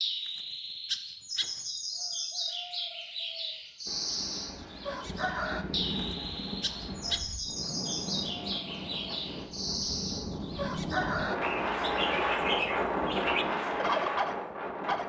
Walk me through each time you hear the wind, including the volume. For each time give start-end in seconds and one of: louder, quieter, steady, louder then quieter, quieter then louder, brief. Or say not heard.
3.9-15.0 louder.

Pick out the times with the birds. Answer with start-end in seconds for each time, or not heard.
0.0-15.0.